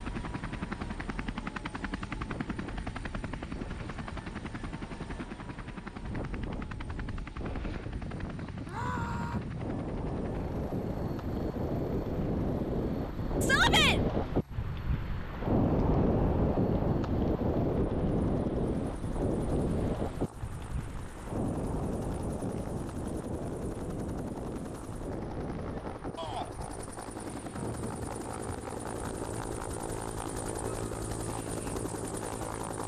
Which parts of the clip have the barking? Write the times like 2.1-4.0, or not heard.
not heard.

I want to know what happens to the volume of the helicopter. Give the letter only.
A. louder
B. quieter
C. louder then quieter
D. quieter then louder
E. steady
D.